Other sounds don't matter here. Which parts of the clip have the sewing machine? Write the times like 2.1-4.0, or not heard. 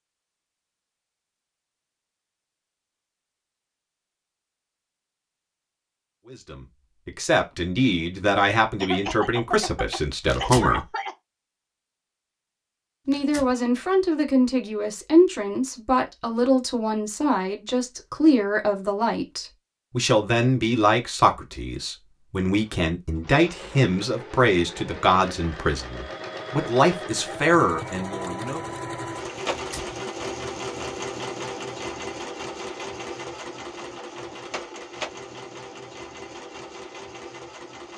22.6-37.9.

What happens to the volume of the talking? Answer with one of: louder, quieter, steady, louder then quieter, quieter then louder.
steady.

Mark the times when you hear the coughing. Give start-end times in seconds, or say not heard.
8.8-11.2.